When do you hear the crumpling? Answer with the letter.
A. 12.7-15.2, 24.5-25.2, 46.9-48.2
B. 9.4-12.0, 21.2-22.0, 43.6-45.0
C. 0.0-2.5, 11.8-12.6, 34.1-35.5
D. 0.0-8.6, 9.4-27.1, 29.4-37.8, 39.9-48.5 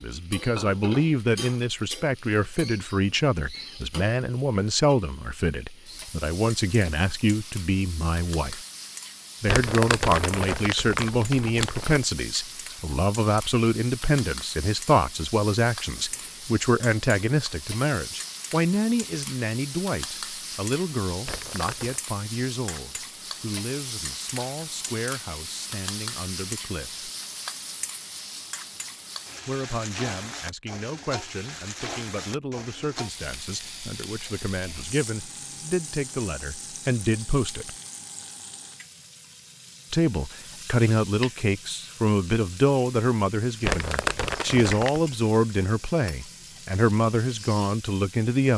B.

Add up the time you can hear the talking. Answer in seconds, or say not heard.
43 s.